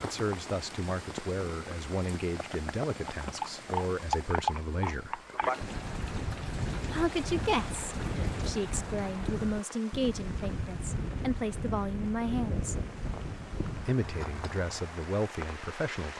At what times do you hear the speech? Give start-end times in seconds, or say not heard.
0.0-5.2, 6.9-12.8, 13.8-16.1.